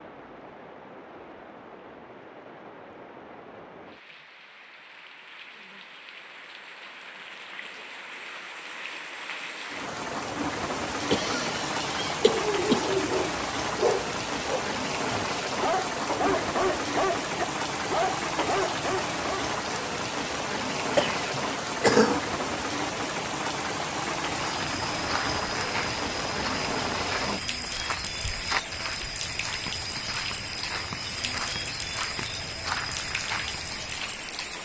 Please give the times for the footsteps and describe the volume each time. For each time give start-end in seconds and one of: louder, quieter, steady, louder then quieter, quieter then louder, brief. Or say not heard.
24.4-34.2 steady.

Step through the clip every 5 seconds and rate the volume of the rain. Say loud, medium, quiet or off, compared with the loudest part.
quiet, medium, loud, loud, loud, loud, medium.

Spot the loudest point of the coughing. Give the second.
22 s.